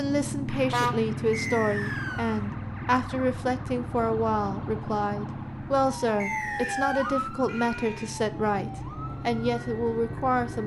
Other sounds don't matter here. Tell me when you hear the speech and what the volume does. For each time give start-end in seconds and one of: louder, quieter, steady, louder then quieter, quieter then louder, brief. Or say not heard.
0.0-10.6 steady.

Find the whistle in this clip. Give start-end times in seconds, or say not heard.
1.3-2.5, 6.2-7.2.